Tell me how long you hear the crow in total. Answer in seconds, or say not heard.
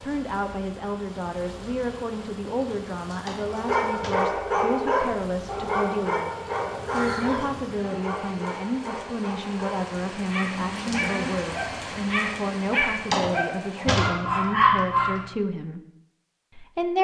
2 s.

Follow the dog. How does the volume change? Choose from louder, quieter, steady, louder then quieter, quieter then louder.
quieter then louder.